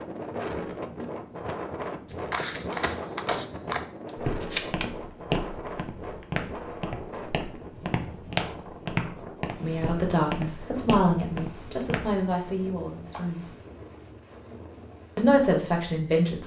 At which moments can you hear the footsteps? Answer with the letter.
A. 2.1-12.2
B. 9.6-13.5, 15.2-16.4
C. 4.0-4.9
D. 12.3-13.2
A.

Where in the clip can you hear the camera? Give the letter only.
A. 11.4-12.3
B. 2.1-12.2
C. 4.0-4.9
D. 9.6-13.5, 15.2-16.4
C.